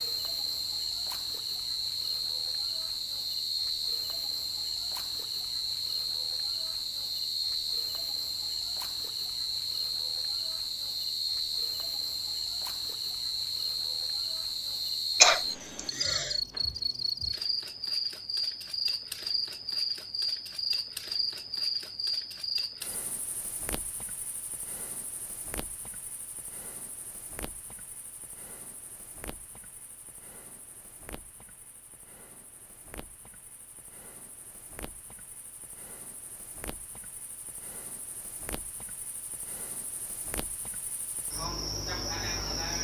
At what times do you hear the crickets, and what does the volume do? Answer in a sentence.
You can hear the crickets from 0.0 to 42.8 s, getting quieter then louder.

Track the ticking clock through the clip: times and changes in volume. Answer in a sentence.
The ticking clock can't be heard in this clip.